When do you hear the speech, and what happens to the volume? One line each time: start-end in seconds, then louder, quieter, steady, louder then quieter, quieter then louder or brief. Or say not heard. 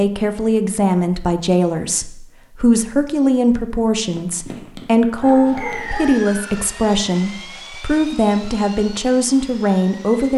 0.0-10.3 steady.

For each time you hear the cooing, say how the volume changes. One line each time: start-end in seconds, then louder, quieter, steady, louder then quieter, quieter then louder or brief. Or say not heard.
not heard.